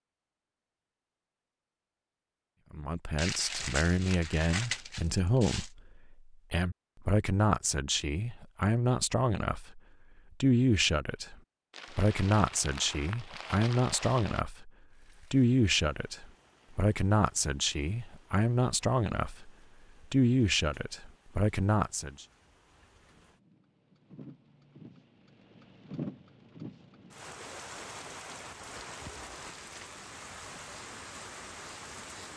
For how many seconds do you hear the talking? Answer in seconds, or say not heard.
18 s.